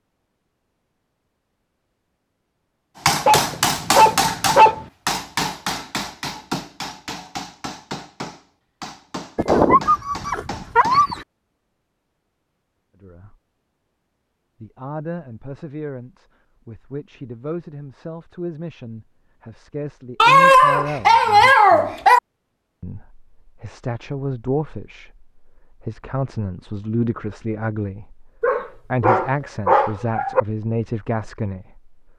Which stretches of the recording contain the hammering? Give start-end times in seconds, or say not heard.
3.0-11.1.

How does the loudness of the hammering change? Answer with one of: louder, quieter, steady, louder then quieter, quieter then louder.
quieter.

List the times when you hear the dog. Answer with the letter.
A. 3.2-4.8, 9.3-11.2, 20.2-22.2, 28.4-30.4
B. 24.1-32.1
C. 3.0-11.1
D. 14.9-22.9
A.